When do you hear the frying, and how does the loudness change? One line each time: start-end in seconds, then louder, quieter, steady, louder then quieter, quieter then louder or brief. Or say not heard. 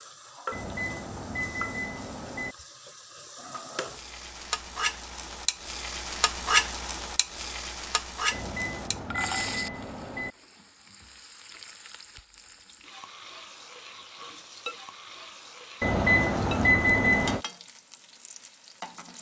0.0-19.1 louder then quieter.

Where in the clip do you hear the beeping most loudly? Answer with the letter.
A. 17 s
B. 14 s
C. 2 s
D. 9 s
A.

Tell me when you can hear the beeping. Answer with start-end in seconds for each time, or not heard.
0.5-2.5, 8.3-10.3, 15.8-17.4.